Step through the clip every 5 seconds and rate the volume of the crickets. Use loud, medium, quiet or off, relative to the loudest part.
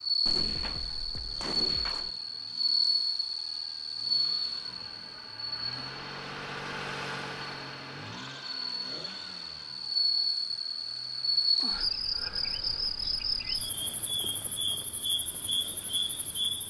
loud, medium, loud, loud.